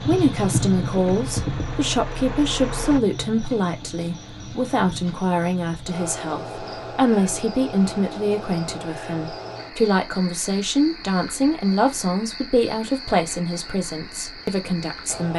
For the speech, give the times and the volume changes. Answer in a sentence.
The speech can be heard from 0.0 to 15.3 s, at a steady volume.